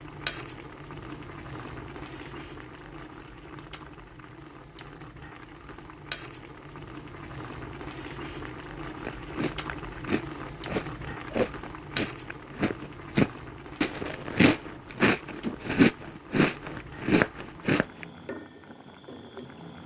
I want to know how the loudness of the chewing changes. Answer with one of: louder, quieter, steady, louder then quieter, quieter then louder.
louder.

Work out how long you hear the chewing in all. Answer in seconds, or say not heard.
9 s.